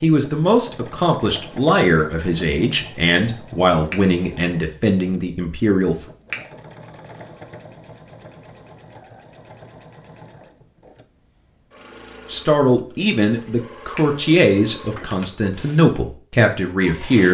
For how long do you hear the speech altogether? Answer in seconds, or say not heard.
11 s.